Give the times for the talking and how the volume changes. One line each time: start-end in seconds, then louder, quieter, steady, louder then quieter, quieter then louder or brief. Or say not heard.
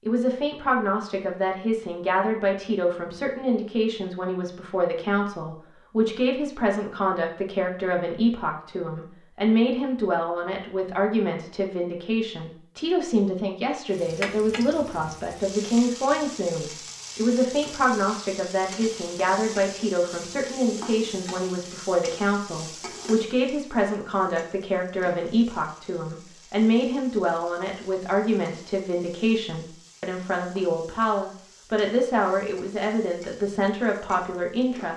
0.1-34.9 steady.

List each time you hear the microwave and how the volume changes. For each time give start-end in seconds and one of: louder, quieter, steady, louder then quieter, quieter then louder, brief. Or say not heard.
not heard.